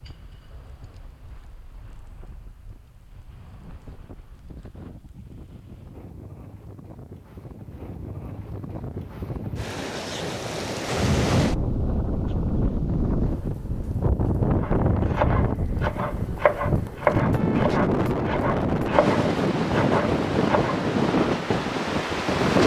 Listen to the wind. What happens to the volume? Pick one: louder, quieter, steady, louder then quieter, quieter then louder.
louder.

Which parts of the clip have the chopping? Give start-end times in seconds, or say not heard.
14.6-20.9.